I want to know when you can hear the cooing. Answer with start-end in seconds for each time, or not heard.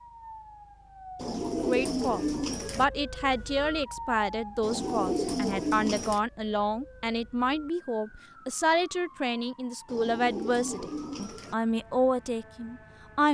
1.1-2.9, 4.6-6.2, 9.8-11.6.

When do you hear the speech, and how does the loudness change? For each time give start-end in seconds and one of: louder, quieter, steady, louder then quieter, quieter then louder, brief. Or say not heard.
1.6-13.2 steady.